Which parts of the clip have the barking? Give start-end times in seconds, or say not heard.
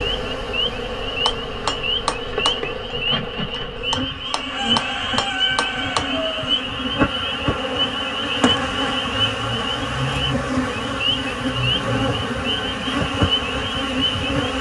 not heard.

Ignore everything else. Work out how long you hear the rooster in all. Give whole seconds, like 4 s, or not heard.
3 s.